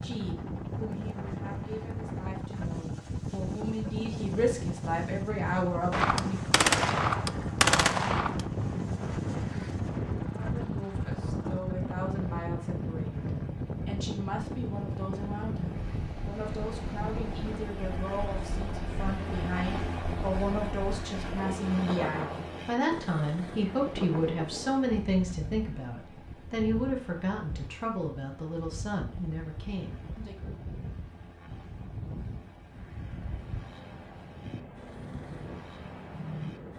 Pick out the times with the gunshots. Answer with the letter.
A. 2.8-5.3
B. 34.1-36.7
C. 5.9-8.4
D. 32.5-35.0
C.